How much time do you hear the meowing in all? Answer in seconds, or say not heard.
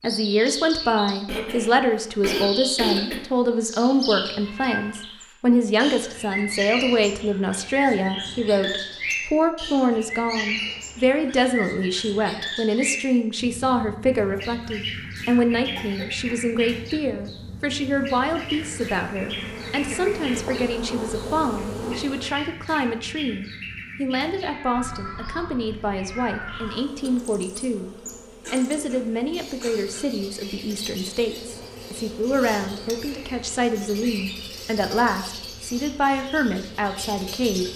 3 s.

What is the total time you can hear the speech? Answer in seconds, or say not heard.
38 s.